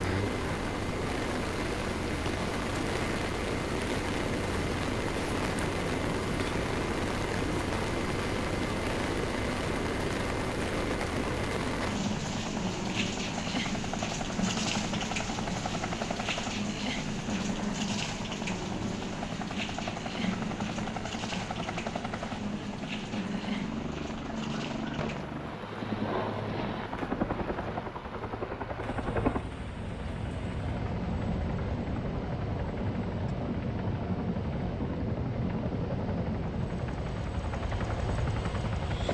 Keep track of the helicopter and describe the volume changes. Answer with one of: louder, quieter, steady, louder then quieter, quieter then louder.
steady.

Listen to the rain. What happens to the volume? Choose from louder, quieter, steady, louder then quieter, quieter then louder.
quieter.